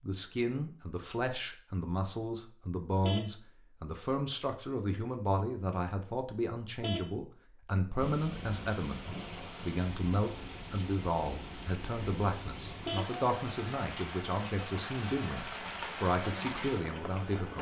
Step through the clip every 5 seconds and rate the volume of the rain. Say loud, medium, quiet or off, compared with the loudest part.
off, loud, loud, loud.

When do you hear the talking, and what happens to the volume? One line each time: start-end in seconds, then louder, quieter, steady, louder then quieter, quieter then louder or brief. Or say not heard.
0.0-17.5 steady.